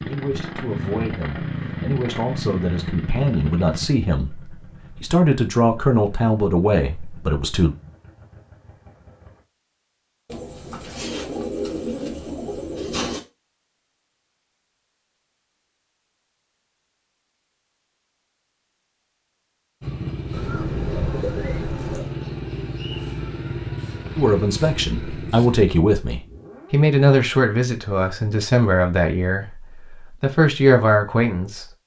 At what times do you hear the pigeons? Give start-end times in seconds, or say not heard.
10.2-13.2, 20.3-22.1.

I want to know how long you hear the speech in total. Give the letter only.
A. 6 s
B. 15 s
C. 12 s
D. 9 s
B.